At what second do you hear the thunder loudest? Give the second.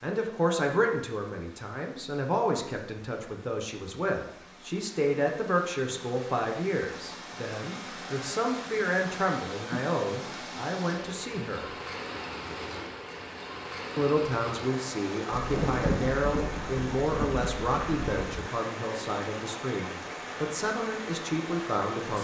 16 s.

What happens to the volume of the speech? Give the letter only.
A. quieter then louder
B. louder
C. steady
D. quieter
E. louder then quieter
C.